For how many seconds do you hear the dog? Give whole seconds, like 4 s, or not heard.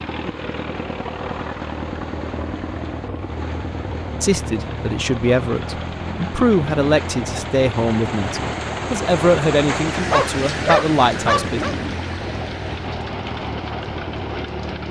2 s.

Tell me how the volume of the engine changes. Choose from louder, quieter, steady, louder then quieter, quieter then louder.
steady.